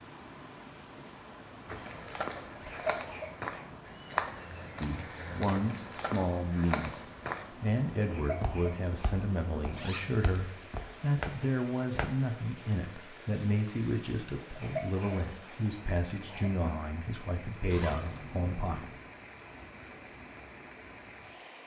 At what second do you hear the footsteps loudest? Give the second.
4 s.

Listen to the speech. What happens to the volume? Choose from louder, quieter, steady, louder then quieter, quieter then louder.
steady.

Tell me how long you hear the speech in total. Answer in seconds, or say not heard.
14 s.